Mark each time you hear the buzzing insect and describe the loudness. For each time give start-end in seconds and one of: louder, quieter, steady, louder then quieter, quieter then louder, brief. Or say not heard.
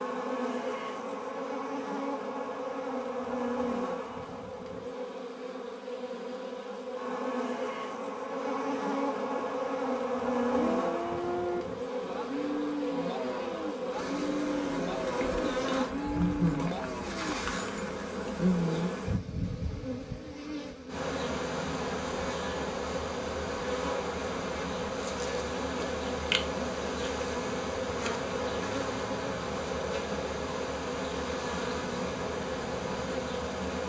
0.0-33.8 steady.